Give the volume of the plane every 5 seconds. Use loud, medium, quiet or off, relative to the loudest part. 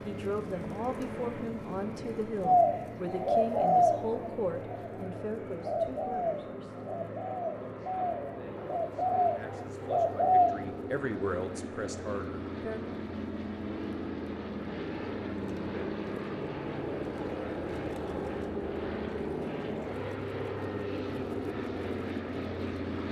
medium, medium, loud, loud, loud.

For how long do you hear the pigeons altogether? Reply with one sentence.
You can hear the pigeons for 8 seconds altogether.